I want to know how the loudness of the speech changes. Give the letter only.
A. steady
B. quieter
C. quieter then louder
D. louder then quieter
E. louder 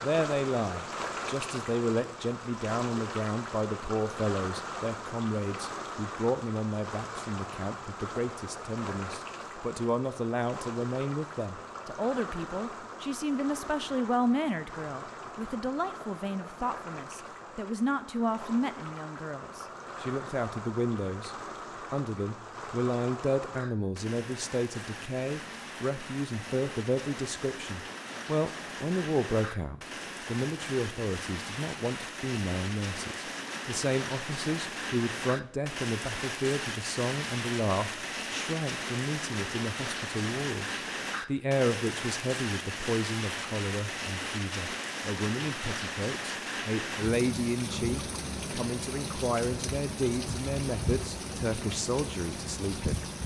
A.